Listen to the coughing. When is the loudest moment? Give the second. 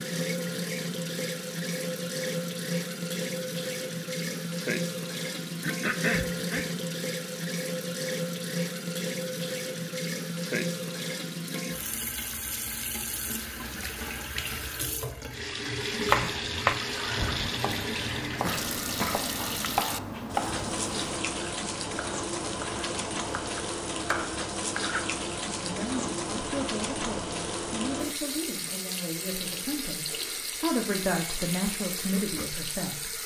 6 s.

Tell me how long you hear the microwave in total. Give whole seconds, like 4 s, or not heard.
not heard.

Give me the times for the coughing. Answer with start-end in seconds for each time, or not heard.
5.6-6.7, 18.2-19.3.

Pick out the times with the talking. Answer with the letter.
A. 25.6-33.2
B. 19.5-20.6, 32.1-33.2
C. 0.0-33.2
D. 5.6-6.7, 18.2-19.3
A.